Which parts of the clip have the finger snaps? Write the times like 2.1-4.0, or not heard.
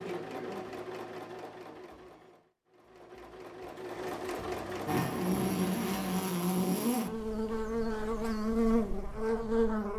not heard.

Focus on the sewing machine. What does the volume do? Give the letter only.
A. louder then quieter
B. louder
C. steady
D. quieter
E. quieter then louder
E.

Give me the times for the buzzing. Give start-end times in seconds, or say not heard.
4.8-9.9.